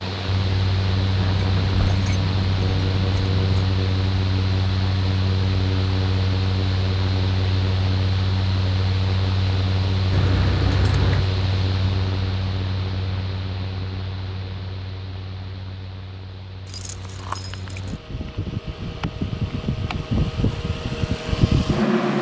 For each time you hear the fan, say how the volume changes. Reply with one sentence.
You can hear the fan from 0.0 to 22.1 s, getting quieter then louder.